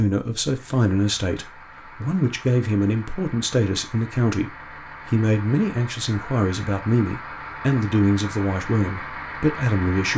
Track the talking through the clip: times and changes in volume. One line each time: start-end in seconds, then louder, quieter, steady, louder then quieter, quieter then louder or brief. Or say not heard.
0.0-10.1 steady.